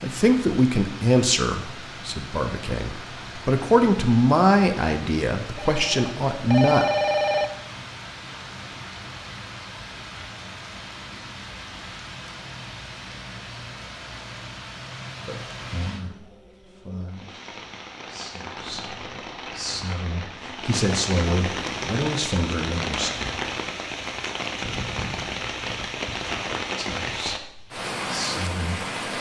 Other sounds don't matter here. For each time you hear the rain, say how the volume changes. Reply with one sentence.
You can hear the rain from 0.0 to 29.1 s, getting louder.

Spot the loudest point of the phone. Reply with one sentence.
The volume of the phone peaks at 7 seconds.